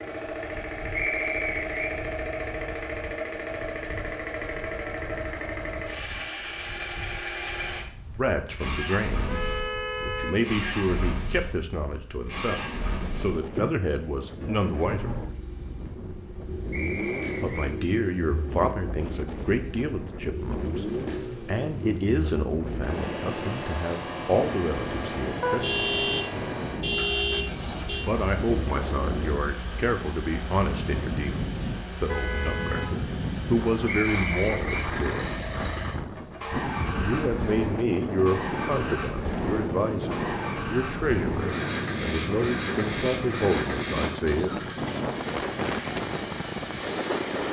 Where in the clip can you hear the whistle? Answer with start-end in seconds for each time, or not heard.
0.9-1.7, 16.7-17.7, 33.9-34.9.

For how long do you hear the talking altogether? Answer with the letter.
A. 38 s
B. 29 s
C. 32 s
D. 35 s
B.